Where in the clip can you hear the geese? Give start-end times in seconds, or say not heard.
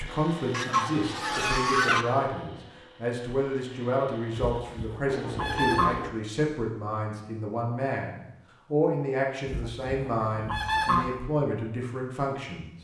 0.5-2.0, 4.3-6.1, 9.4-11.2.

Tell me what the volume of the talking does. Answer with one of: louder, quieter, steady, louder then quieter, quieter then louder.
steady.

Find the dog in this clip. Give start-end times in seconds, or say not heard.
not heard.